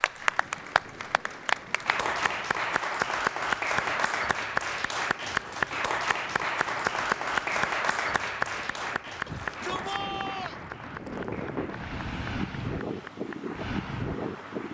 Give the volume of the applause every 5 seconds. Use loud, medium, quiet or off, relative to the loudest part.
loud, loud, quiet.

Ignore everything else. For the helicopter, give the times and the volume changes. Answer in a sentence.
The helicopter can't be heard in this clip.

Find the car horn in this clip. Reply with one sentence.
You can't hear the car horn here.